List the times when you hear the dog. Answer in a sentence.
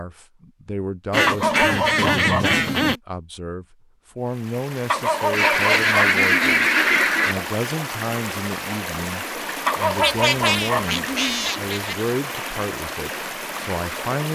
The dog can be heard from 1.2 to 3.0 s, from 4.9 to 6.7 s and from 9.7 to 11.4 s.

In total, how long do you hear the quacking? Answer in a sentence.
The quacking can be heard for 6 seconds in total.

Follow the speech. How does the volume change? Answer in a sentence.
The loudness of the speech stays about the same.